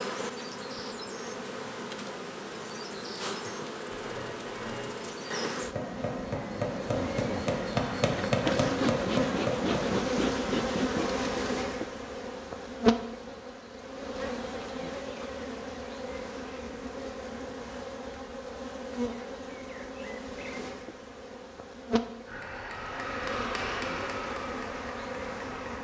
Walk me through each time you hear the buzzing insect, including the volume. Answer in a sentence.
The buzzing insect can be heard from 0.0 to 25.8 s, getting louder then quieter.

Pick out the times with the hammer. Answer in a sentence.
The hammer can be heard from 3.8 to 10.0 s and from 22.2 to 25.8 s.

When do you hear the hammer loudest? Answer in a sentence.
The loudest moment of the hammer is at 8 seconds.